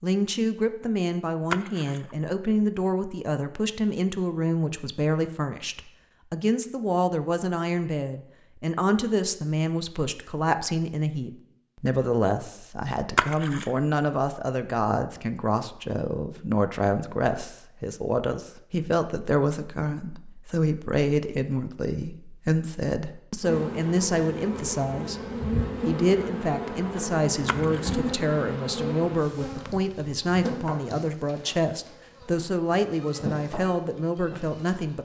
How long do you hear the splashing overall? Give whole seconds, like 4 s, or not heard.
2 s.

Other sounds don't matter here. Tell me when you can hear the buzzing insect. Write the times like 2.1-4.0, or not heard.
23.4-34.9.